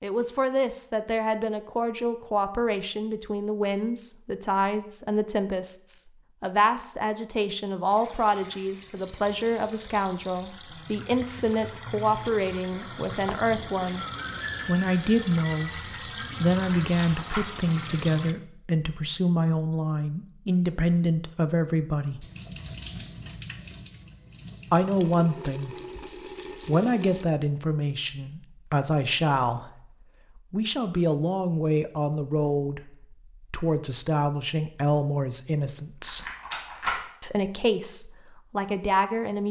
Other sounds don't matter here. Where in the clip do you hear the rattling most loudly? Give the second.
37 s.